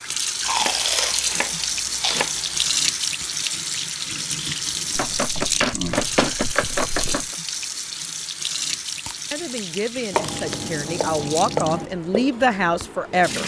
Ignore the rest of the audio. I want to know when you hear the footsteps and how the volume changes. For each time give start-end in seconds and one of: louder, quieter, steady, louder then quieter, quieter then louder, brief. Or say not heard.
not heard.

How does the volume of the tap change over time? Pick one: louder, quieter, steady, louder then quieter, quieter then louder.
quieter.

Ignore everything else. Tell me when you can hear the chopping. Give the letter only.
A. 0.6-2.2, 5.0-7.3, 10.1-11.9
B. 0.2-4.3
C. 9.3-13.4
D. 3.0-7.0
A.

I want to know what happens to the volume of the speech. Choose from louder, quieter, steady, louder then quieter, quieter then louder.
louder.